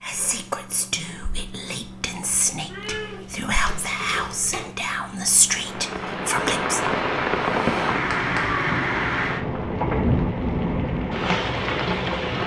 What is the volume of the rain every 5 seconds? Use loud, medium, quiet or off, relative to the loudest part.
off, loud, loud.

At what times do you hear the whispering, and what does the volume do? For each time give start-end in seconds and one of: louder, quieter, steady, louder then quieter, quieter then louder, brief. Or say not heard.
0.0-6.8 louder.